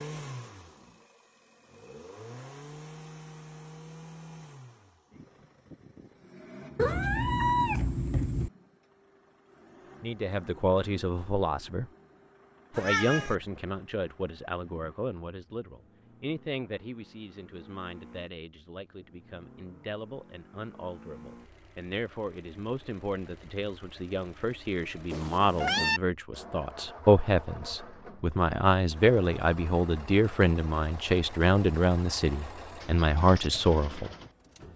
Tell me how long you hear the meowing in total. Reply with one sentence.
The meowing can be heard for 3 seconds in total.